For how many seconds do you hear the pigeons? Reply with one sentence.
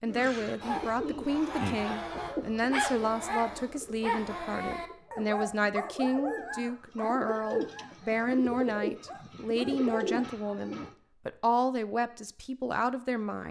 You can hear the pigeons for 11 seconds altogether.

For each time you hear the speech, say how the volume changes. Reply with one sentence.
You can hear the speech from 0.0 to 13.4 s, at a steady volume.